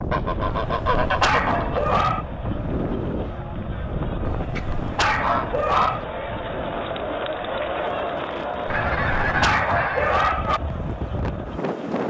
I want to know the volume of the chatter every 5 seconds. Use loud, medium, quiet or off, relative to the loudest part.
medium, loud, medium.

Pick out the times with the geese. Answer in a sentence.
The geese can be heard from 0.1 to 2.1 s, from 4.5 to 6.0 s and from 8.7 to 10.4 s.